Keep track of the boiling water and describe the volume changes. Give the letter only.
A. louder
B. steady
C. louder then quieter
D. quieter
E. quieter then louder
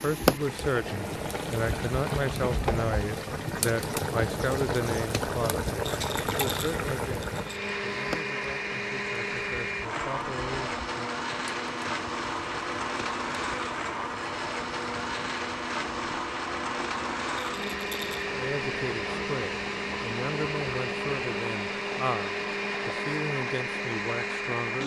D.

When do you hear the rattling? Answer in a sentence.
The rattling can be heard from 5.8 to 7.7 s and from 17.5 to 18.2 s.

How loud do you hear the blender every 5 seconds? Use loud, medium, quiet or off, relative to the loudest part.
quiet, loud, loud, loud, loud.